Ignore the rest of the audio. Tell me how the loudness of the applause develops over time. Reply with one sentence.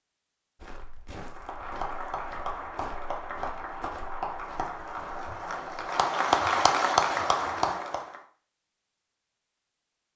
The loudness of the applause goes up.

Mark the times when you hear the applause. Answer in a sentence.
You can hear the applause from 1.3 to 8.2 s.